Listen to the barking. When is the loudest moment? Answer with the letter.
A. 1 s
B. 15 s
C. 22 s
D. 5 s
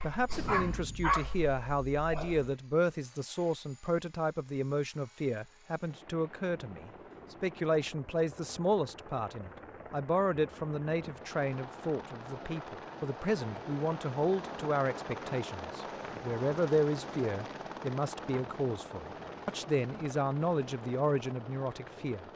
A.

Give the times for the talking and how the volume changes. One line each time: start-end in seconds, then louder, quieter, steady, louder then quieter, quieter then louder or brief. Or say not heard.
0.0-22.2 steady.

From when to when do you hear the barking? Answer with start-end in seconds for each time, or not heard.
0.0-2.5.